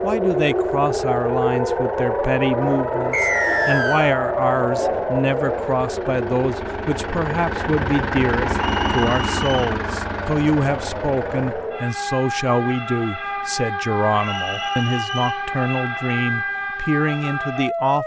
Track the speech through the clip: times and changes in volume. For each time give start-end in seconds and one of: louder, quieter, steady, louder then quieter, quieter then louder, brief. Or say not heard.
0.0-18.0 steady.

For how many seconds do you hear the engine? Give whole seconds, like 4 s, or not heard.
12 s.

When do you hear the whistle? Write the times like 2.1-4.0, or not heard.
3.1-4.2, 8.6-9.8, 14.2-15.4.